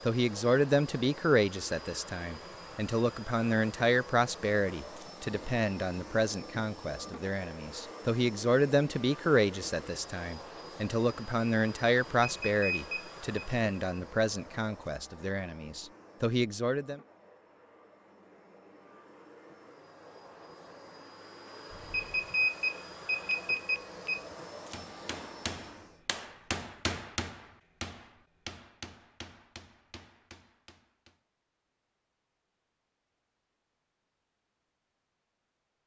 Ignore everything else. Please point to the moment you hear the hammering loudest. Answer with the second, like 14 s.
27 s.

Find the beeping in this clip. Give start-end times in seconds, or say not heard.
12.2-13.4, 21.7-24.2.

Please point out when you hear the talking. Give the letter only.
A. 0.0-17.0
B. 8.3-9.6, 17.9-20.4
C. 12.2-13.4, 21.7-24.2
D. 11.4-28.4
A.